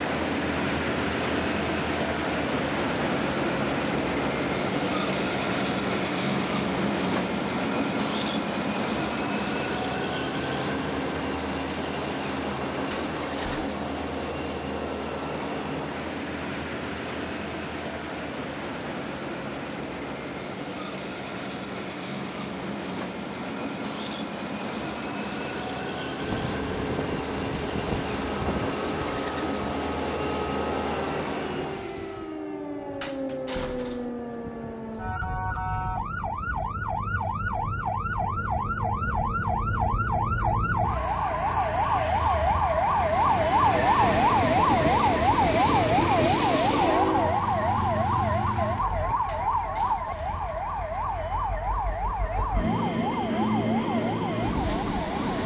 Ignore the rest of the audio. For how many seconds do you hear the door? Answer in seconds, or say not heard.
3 s.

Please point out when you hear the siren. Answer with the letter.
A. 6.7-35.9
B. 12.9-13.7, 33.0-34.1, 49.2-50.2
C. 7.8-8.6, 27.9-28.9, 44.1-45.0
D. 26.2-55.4
D.